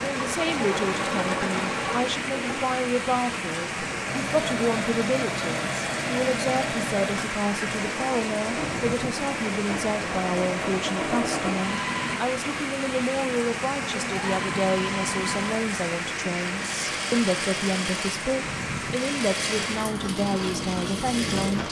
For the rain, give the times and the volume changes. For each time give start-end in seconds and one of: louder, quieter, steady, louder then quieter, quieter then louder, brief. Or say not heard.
0.0-21.6 steady.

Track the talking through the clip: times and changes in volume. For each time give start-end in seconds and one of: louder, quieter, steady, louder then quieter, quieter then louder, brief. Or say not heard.
0.0-21.6 steady.